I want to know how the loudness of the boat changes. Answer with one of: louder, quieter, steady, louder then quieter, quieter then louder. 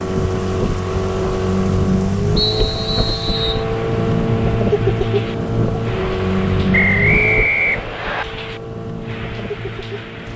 quieter.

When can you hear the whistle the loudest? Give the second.
7 s.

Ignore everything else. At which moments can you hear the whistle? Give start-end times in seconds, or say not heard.
2.4-3.6, 6.7-8.2.